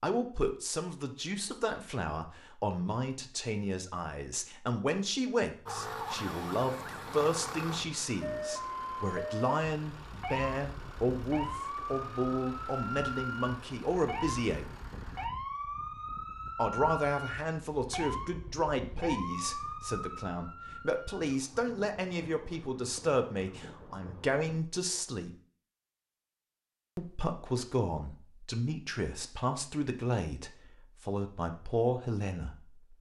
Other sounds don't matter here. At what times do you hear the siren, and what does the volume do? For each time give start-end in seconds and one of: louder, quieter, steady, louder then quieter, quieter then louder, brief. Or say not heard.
5.7-24.6 quieter.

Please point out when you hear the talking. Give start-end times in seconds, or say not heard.
0.0-14.7, 16.6-25.4, 26.9-32.9.